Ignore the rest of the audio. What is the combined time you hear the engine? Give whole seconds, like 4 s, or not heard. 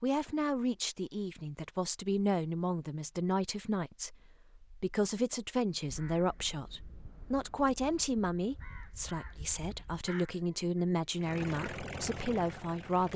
2 s.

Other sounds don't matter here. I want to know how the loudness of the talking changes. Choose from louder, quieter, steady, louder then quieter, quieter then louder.
steady.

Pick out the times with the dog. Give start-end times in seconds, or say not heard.
not heard.